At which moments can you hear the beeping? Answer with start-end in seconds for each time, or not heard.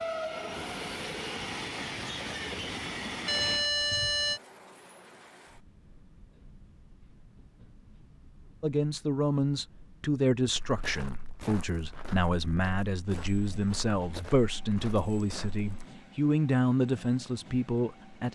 3.2-4.4.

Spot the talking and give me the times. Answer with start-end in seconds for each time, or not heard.
8.6-18.3.